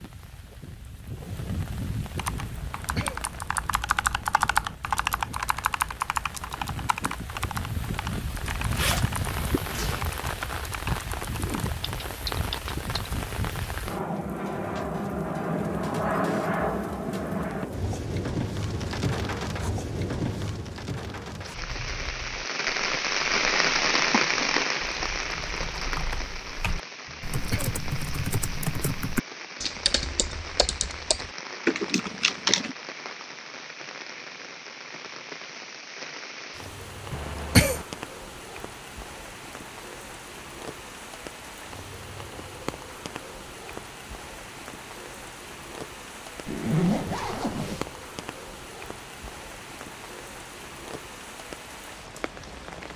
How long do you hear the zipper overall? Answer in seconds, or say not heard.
3 s.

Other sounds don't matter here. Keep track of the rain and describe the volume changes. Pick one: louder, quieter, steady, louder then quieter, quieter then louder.
louder then quieter.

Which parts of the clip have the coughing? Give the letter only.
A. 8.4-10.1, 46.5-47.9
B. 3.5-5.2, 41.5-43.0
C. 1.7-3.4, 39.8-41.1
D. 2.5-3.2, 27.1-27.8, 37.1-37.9
D.